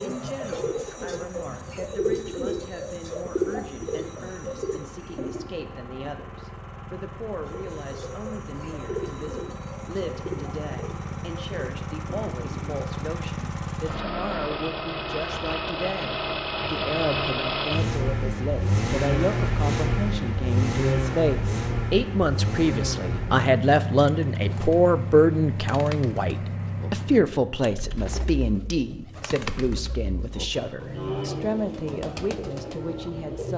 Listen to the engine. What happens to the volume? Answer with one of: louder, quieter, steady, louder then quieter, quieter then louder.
louder then quieter.